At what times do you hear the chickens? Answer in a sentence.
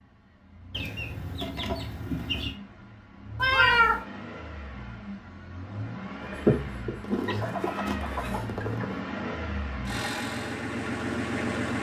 The chickens can be heard from 0.7 to 2.5 s and from 7.0 to 9.0 s.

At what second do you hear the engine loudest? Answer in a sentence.
The loudest moment of the engine is at 11 seconds.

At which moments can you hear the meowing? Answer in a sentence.
The meowing can be heard from 3.4 to 4.0 s and from 6.2 to 8.4 s.